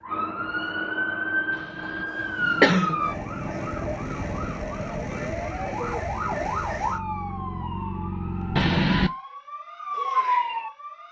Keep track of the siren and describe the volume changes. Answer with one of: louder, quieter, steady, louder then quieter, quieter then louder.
steady.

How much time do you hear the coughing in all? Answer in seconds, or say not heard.
2 s.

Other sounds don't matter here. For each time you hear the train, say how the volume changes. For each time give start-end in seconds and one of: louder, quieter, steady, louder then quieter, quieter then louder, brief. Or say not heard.
not heard.